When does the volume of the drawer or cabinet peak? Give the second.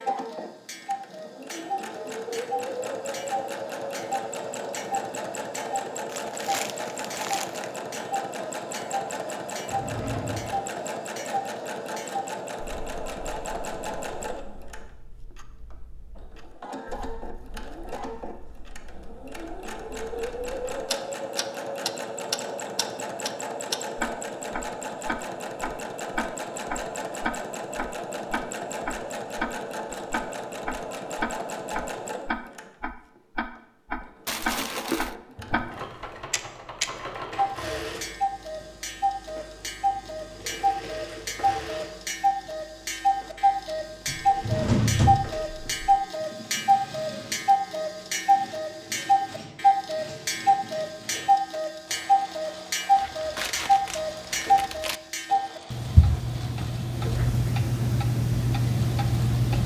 45 s.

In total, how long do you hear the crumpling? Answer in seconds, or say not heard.
5 s.